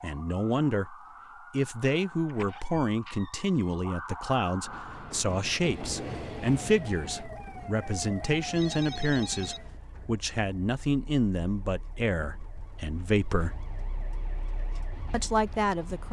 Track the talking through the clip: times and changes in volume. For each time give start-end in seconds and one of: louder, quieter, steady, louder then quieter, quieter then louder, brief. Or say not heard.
0.0-13.7 steady
15.1-16.0 brief.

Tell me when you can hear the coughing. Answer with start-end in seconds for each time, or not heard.
not heard.